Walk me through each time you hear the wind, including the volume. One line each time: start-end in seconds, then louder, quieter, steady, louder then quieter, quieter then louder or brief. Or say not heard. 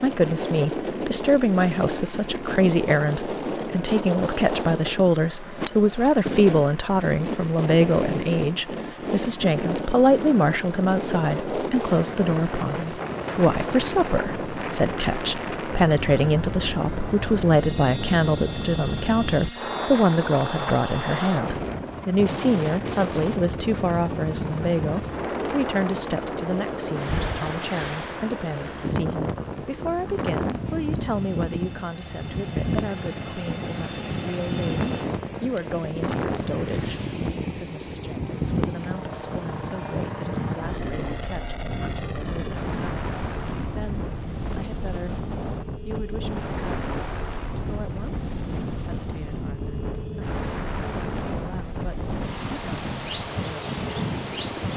0.0-54.7 steady.